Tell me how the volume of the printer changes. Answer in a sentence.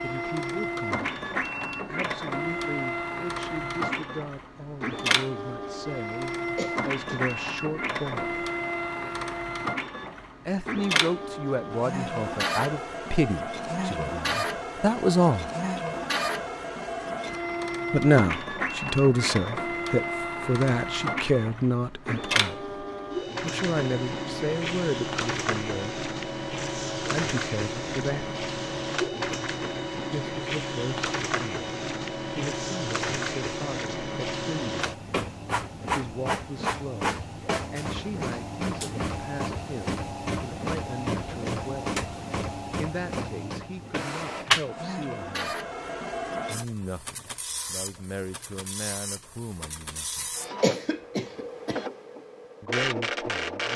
The volume of the printer stays about the same.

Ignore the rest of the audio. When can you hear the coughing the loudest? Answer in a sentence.
The volume of the coughing peaks at 51 seconds.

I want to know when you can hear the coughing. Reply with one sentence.
You can hear the coughing from 6.5 to 7.3 s and from 50.6 to 51.8 s.